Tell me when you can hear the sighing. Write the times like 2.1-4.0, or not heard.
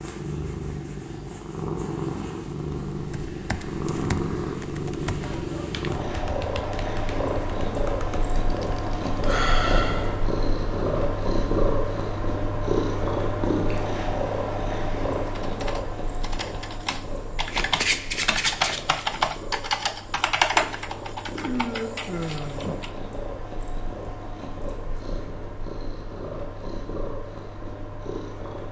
9.2-10.2, 21.4-22.8.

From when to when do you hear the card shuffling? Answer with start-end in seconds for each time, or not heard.
17.5-19.1.